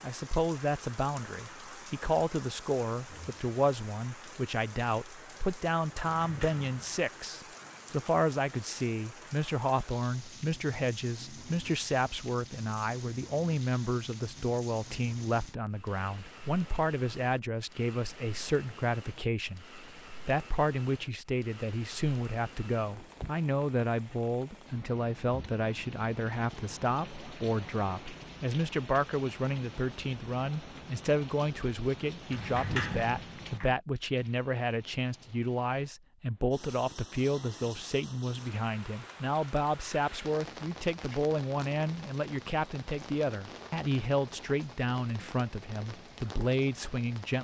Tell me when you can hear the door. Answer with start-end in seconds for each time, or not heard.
6.0-7.0, 32.3-33.8.